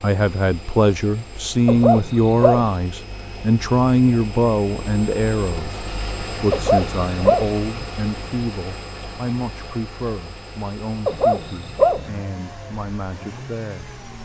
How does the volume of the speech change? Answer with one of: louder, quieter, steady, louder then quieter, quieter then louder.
quieter.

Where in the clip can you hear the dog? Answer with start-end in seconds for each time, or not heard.
1.6-2.7, 6.5-7.5, 11.1-12.1.